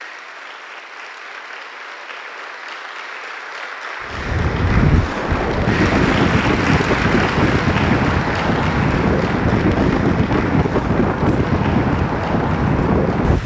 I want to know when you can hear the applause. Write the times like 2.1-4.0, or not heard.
0.0-13.4.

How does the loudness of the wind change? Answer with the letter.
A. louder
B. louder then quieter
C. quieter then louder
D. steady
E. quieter
D.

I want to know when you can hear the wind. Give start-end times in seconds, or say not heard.
4.0-13.4.